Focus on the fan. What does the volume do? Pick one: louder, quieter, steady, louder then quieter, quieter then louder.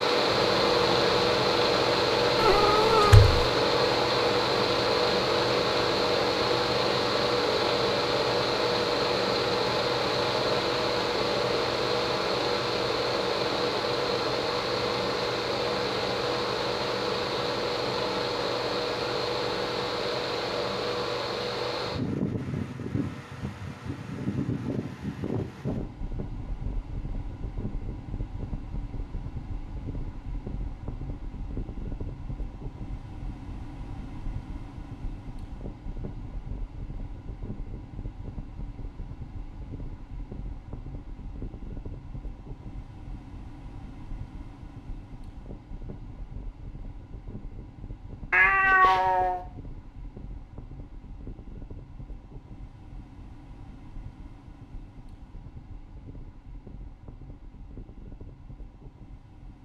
quieter.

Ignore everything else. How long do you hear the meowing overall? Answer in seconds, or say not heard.
2 s.